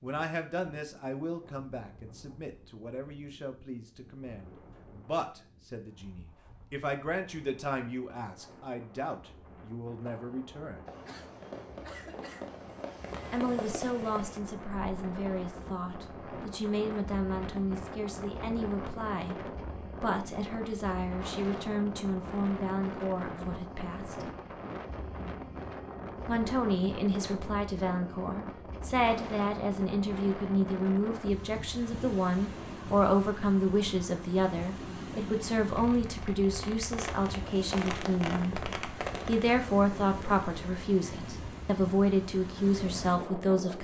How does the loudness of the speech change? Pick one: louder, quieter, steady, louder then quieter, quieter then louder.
louder.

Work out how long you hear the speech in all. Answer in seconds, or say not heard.
38 s.